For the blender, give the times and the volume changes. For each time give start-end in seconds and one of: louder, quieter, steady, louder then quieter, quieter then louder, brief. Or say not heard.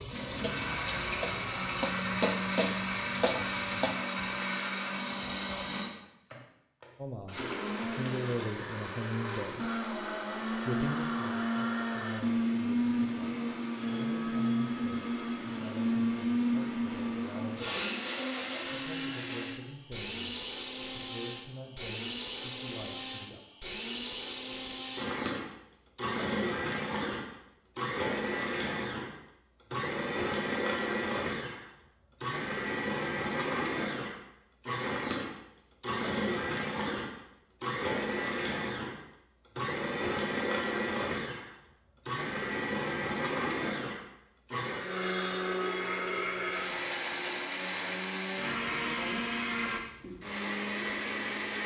0.0-51.6 steady.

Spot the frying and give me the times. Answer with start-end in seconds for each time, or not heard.
0.0-4.0.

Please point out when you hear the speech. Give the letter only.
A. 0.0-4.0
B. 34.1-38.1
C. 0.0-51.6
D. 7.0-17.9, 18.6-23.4
D.